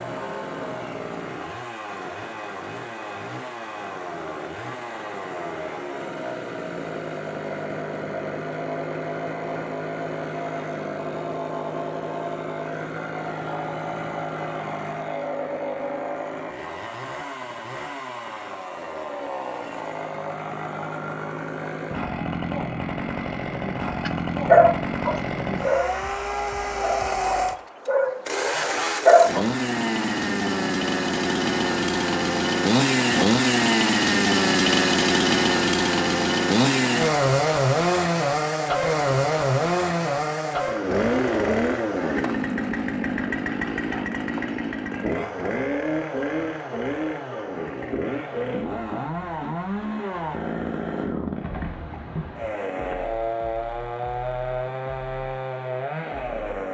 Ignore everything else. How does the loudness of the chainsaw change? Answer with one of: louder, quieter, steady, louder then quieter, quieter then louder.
louder then quieter.